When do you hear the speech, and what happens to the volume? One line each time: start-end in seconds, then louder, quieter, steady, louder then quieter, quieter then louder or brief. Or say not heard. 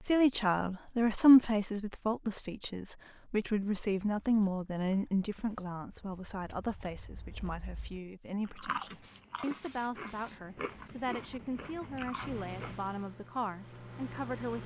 0.0-14.6 quieter.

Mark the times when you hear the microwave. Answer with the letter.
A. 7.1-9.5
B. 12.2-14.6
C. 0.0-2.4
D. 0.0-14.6
B.